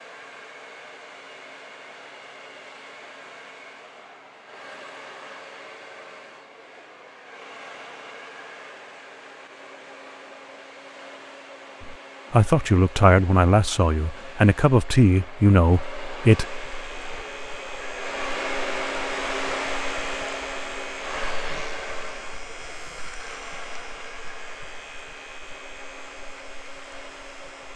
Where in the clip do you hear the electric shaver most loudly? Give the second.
20 s.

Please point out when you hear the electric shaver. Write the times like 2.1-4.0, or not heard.
16.4-27.7.